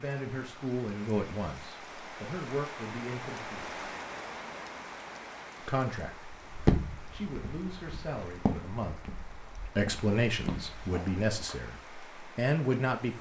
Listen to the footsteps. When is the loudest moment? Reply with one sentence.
The volume of the footsteps peaks at 7 seconds.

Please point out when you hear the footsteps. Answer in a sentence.
The footsteps can be heard from 6.5 to 11.6 s.